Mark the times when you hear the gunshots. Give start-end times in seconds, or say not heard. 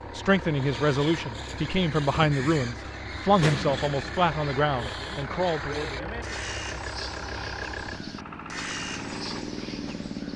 3.4-4.2.